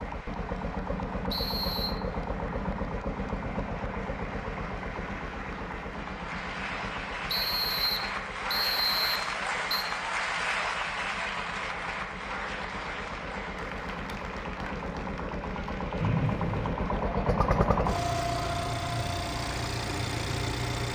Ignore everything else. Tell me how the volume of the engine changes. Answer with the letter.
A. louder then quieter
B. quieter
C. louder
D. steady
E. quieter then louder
E.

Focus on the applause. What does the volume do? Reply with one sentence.
The volume of the applause goes up, then down.